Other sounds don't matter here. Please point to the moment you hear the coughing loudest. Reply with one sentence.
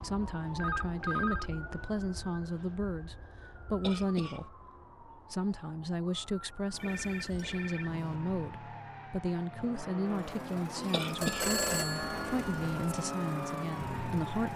The volume of the coughing peaks at 11 seconds.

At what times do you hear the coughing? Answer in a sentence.
You can hear the coughing from 3.8 to 4.5 s and from 10.9 to 11.6 s.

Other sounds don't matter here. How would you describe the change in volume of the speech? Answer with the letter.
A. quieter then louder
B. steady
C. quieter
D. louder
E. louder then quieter
B.